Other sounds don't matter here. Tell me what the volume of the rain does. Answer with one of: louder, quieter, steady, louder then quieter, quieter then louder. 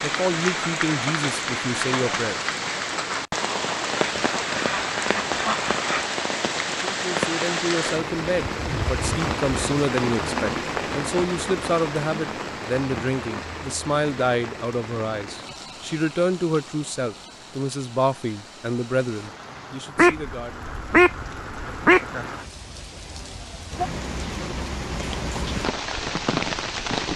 quieter then louder.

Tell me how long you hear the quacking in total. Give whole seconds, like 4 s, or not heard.
4 s.